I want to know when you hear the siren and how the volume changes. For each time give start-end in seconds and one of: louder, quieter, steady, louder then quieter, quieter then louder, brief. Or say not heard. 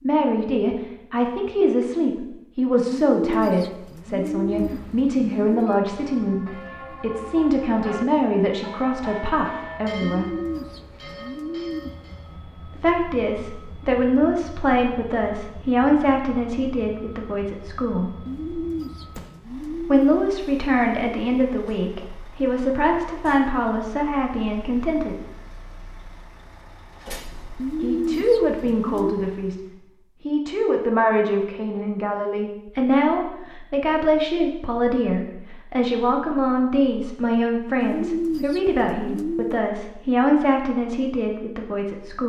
not heard.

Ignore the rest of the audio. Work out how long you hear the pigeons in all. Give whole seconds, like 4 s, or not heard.
11 s.